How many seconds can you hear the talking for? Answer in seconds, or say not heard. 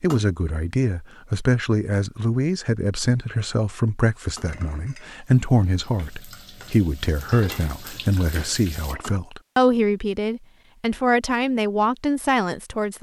13 s.